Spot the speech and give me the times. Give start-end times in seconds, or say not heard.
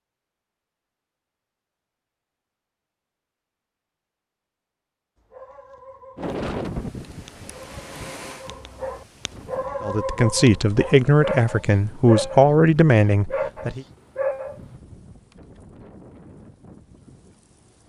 9.8-13.8.